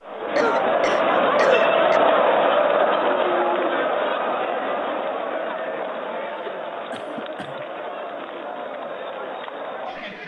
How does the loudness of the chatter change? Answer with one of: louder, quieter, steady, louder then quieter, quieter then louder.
quieter.